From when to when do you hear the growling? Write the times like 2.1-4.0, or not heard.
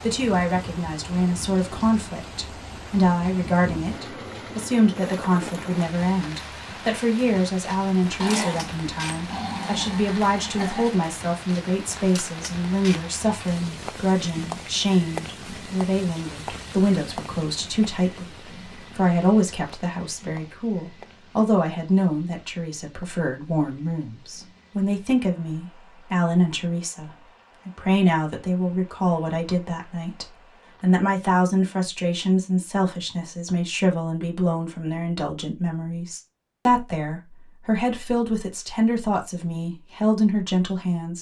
8.2-10.9.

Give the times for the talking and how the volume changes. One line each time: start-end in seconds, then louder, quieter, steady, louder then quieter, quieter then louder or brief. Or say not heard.
0.0-41.1 steady.